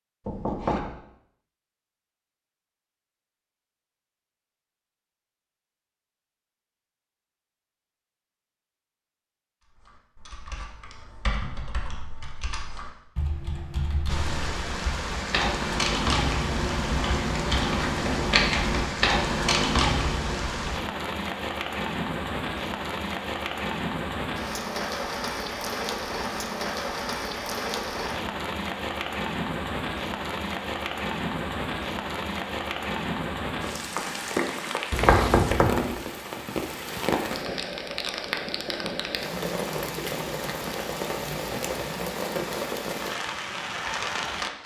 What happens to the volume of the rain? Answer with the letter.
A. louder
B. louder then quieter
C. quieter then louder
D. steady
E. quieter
D.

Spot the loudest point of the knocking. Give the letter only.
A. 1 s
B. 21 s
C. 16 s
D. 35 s
D.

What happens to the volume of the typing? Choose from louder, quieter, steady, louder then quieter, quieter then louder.
louder.